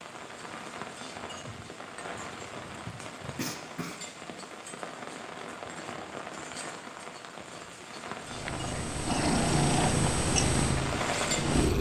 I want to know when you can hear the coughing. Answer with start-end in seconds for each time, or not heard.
3.4-4.0.